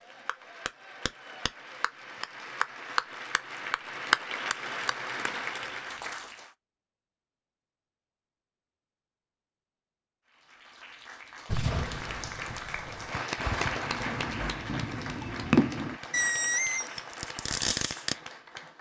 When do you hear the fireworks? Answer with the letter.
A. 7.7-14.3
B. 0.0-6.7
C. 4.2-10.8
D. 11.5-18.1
D.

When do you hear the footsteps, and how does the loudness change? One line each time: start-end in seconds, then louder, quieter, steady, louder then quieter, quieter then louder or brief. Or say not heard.
not heard.